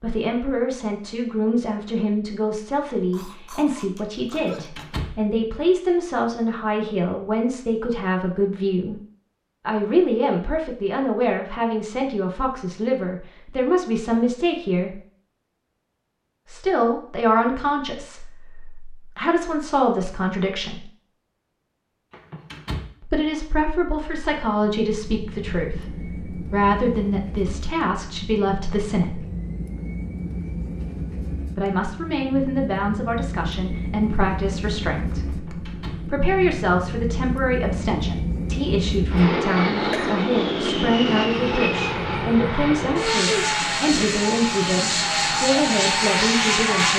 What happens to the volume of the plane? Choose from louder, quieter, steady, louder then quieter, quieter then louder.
louder.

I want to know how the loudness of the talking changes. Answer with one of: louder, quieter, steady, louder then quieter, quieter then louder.
steady.